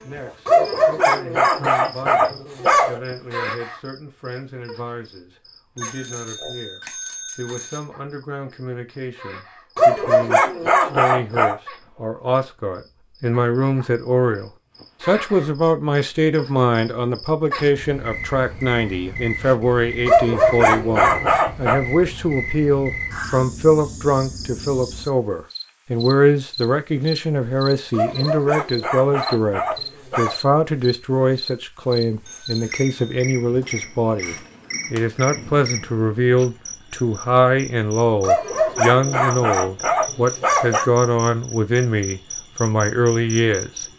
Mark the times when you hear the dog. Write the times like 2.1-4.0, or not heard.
0.5-3.0, 9.8-11.6, 20.1-21.8, 27.9-30.4, 38.2-40.9.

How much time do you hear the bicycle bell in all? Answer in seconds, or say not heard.
3 s.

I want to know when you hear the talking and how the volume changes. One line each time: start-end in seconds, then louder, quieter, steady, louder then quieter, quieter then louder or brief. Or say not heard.
0.0-43.9 louder.